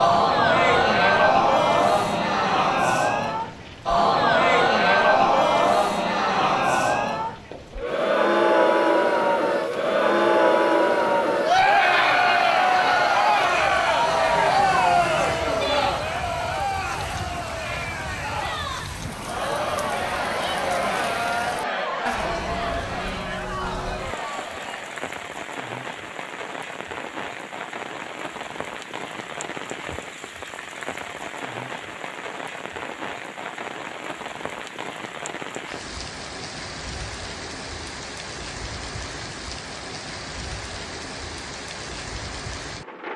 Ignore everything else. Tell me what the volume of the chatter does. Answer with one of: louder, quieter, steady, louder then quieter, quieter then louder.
quieter.